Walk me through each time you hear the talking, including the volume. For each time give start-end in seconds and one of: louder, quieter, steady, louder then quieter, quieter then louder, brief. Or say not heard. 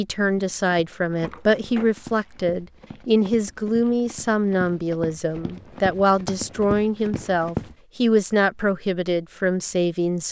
0.0-10.2 steady.